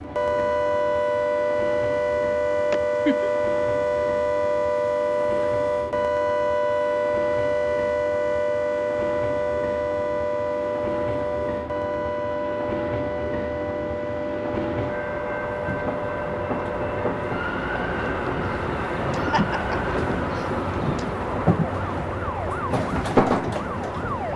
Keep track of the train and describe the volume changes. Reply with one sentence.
The volume of the train goes up.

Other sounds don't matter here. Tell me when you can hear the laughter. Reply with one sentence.
The laughter can be heard from 2.7 to 3.3 s and from 19.3 to 20.6 s.